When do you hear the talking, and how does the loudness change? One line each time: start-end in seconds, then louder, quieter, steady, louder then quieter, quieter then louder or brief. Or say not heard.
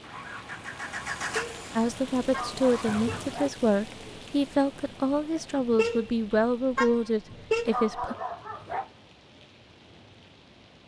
1.8-8.2 steady.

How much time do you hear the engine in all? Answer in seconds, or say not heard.
3 s.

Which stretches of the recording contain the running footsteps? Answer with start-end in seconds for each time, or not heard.
not heard.